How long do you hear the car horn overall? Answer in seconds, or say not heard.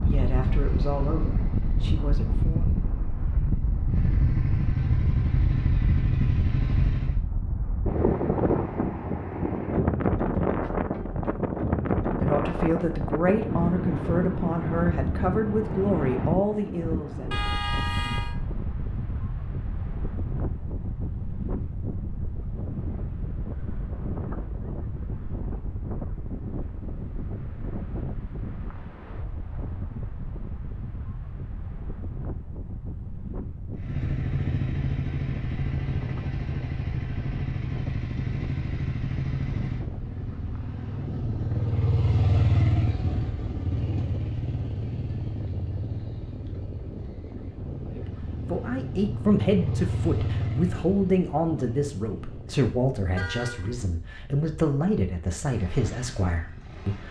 2 s.